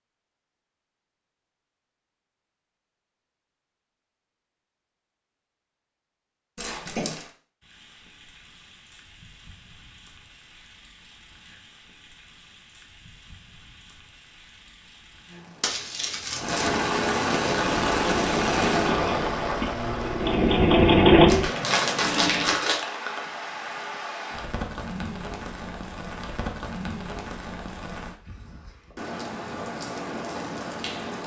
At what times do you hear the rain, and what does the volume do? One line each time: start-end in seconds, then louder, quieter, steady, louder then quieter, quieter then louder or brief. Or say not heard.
7.0-31.2 louder then quieter.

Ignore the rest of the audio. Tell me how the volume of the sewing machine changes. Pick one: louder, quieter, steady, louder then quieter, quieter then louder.
louder then quieter.